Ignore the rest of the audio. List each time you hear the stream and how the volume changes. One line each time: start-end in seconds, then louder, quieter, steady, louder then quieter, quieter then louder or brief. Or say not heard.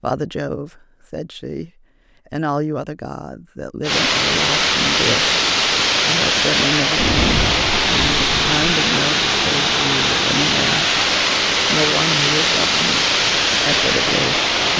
3.8-14.7 steady.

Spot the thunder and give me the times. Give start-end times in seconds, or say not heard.
7.0-8.6.